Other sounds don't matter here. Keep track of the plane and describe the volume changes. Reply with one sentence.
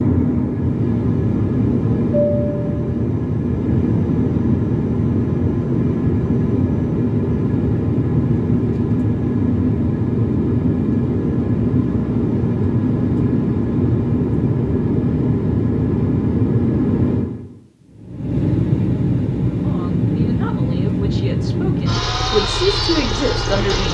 The volume of the plane stays about the same.